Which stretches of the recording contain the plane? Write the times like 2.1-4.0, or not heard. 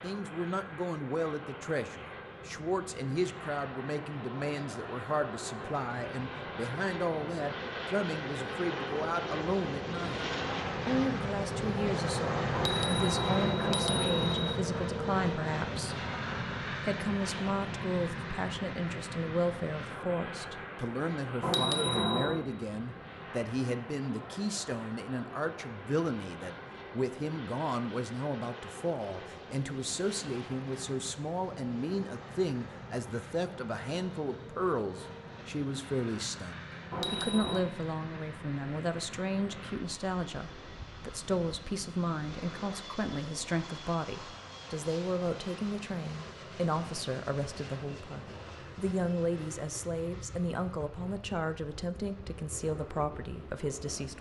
0.0-54.1.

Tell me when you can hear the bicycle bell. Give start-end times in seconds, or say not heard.
12.5-14.6, 21.4-22.4, 36.9-37.6.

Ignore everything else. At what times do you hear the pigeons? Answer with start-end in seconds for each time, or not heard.
not heard.